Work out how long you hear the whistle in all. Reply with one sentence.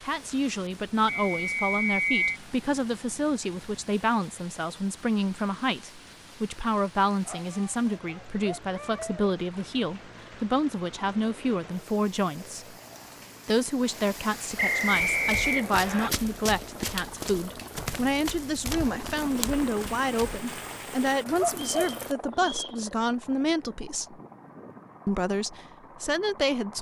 The whistle can be heard for 4 seconds in total.